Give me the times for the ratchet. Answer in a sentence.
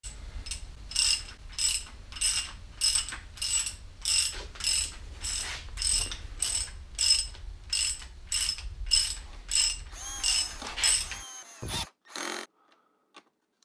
The ratchet can be heard from 0.0 to 11.8 s.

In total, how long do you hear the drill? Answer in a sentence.
The drill can be heard for 4 seconds in total.